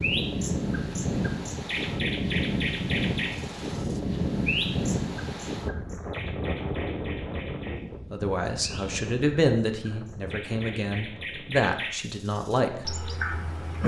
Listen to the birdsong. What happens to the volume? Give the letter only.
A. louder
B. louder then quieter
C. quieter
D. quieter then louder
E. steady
D.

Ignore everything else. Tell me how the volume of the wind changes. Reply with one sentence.
The volume of the wind goes down.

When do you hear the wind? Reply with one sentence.
You can hear the wind from 0.0 to 13.7 s.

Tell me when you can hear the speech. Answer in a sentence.
The speech can be heard from 8.1 to 12.9 s.